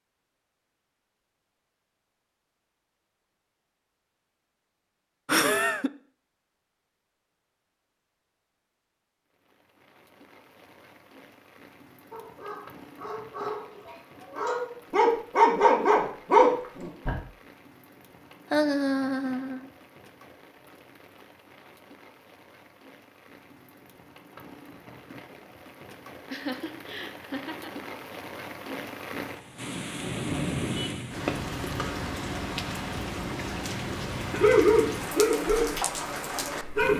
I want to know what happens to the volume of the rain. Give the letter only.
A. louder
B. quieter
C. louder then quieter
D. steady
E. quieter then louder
A.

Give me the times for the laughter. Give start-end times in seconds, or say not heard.
5.2-5.9, 18.5-19.7, 26.3-27.9.